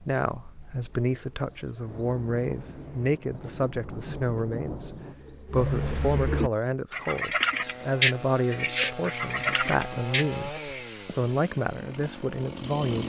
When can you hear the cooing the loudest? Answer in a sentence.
The volume of the cooing peaks at 8 seconds.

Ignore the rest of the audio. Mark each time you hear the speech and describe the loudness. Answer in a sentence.
The speech can be heard from 0.1 to 13.0 s, at a steady volume.